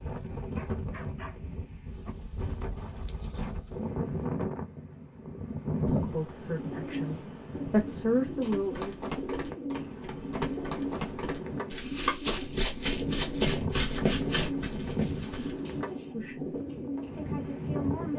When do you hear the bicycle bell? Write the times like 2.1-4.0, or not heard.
not heard.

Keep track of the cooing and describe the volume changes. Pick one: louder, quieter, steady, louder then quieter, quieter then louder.
steady.